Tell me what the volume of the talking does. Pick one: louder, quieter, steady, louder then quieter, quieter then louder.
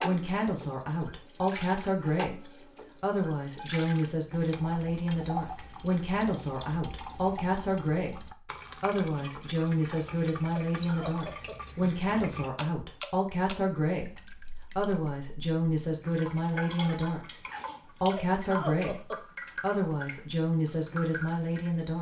steady.